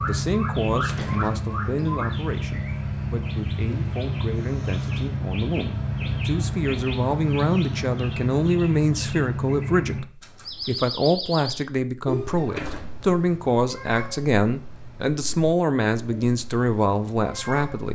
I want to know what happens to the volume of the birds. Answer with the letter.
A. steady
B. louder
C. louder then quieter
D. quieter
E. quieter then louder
D.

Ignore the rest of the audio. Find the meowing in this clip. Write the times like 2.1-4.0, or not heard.
not heard.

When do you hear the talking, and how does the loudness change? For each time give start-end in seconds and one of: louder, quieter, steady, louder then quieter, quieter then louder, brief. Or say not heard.
0.0-17.8 louder.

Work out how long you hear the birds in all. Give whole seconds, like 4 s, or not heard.
18 s.